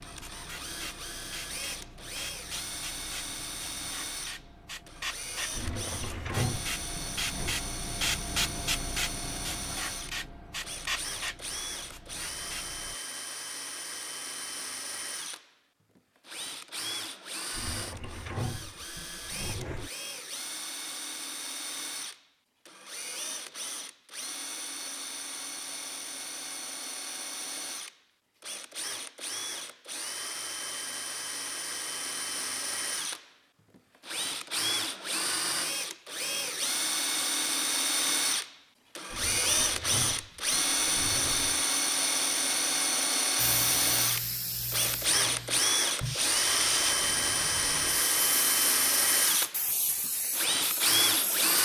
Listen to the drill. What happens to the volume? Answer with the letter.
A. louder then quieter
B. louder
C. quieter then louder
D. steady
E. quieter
B.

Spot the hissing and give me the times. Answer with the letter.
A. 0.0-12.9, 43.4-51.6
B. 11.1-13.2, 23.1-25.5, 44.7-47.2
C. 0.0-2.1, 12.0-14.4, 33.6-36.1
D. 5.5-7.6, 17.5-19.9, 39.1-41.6
A.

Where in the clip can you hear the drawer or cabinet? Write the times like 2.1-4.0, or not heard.
5.5-7.6, 17.5-19.9, 39.1-41.6.